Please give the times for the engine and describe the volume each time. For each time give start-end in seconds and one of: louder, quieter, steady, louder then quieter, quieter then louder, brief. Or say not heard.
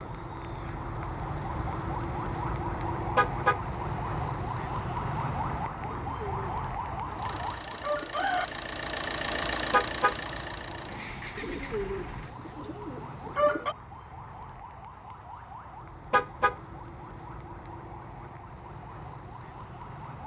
7.2-12.3 louder then quieter.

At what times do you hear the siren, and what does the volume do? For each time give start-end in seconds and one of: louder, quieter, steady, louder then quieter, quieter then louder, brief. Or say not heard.
0.0-20.2 quieter.